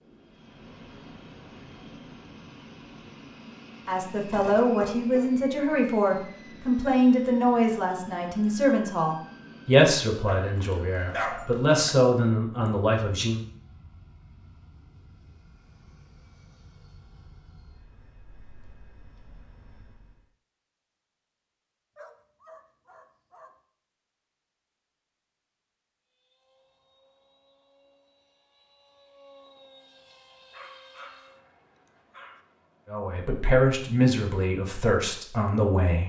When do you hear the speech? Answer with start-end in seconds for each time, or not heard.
3.9-13.4, 32.9-36.0.